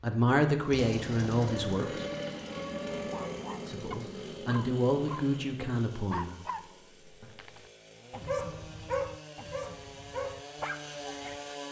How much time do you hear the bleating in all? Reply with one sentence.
The bleating can't be heard in this clip.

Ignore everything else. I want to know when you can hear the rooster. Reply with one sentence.
The rooster can be heard from 1.4 to 3.4 s.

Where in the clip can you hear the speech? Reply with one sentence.
You can hear the speech from 0.0 to 2.0 s and from 3.6 to 7.2 s.